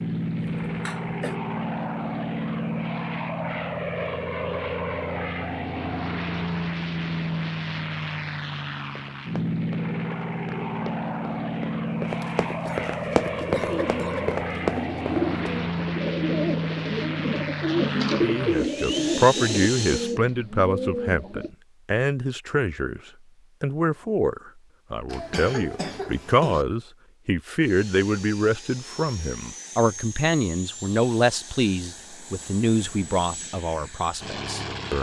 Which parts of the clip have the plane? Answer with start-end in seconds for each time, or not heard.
0.0-20.1, 27.6-34.9.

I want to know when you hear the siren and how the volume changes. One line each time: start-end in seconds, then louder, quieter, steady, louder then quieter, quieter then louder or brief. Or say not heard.
not heard.